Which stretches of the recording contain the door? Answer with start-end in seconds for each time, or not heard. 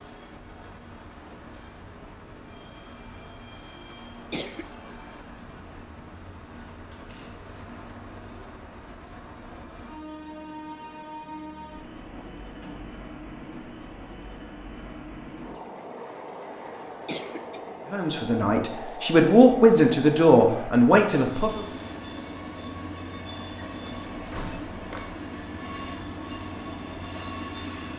6.9-7.5, 12.1-12.9, 23.9-25.2.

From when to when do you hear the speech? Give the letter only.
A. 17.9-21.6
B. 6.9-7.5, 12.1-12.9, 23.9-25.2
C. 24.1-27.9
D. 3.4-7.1
A.